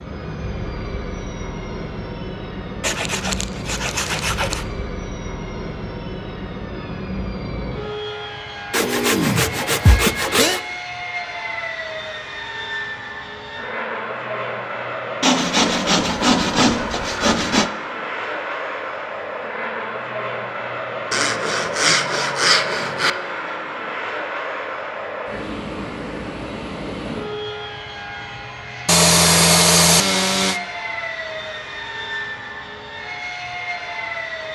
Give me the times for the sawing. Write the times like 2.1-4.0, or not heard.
2.8-4.7, 8.7-10.6, 15.2-17.7, 21.1-23.1, 28.9-30.6.